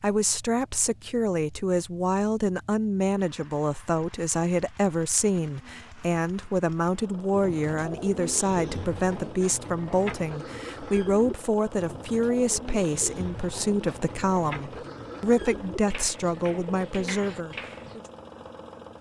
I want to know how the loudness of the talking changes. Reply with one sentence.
The loudness of the talking stays about the same.